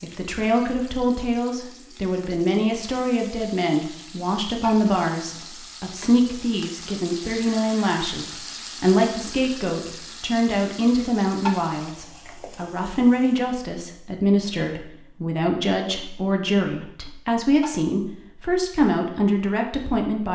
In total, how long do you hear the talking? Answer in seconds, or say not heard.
20 s.